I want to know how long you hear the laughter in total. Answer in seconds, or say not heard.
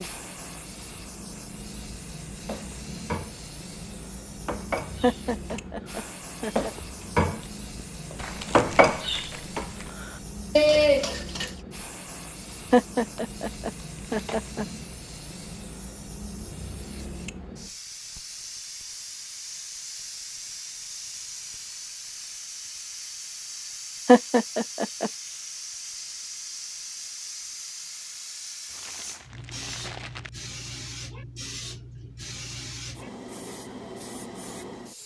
5 s.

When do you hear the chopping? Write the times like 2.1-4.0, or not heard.
not heard.